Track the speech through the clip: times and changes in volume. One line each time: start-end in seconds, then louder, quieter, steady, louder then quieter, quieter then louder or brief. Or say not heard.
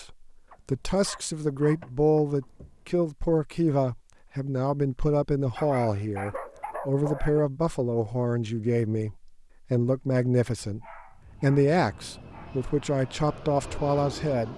0.0-14.5 steady.